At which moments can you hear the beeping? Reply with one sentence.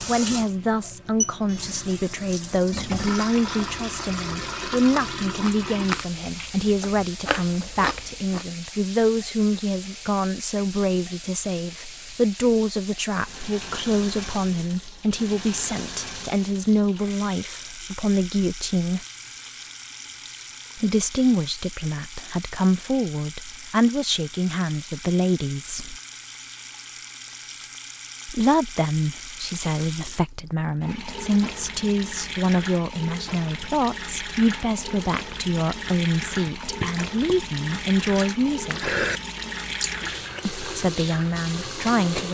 The beeping can be heard from 1.2 to 1.8 s.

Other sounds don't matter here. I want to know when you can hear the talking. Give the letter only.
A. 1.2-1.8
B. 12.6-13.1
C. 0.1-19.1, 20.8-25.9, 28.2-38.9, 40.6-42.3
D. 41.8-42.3
C.